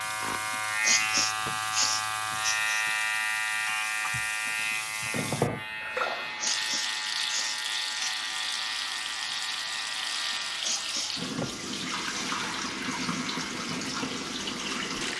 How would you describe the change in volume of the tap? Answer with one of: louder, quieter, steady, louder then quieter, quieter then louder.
louder.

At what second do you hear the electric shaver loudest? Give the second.
3 s.